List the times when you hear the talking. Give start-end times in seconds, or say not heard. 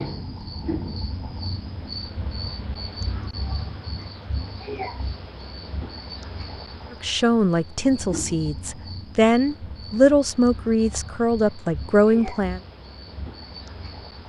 6.9-12.6.